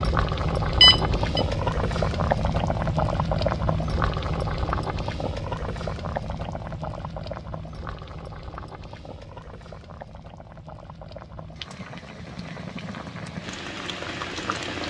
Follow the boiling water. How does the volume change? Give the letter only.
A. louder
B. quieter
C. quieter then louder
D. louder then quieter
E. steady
C.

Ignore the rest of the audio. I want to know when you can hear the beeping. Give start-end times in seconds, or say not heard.
0.8-1.4.